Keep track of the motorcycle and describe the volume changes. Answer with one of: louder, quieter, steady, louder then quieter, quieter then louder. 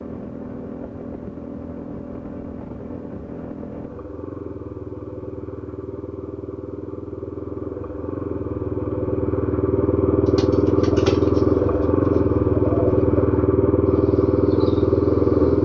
louder.